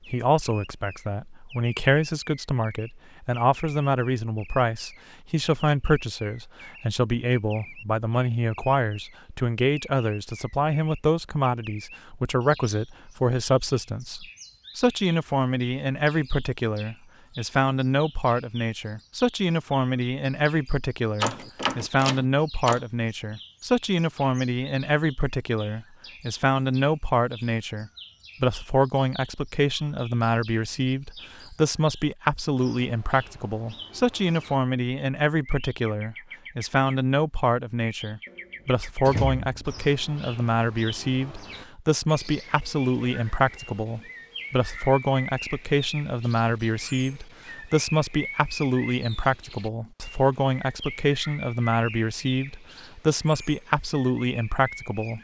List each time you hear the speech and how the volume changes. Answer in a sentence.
You can hear the speech from 0.1 to 55.1 s, at a steady volume.